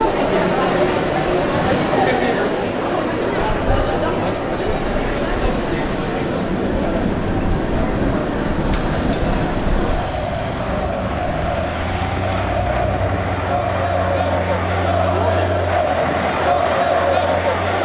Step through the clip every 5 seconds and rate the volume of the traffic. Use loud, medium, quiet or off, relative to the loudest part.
medium, loud, medium, medium.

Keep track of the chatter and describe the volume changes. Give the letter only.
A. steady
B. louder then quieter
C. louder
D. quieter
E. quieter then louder
E.